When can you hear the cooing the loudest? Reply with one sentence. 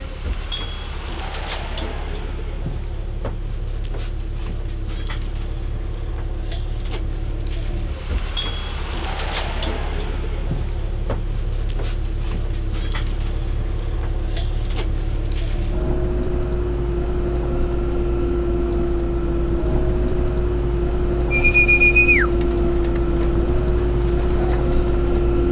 The volume of the cooing peaks at 22 seconds.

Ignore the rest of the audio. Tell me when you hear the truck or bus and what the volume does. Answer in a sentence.
The truck or bus can be heard from 0.0 to 25.4 s, getting louder.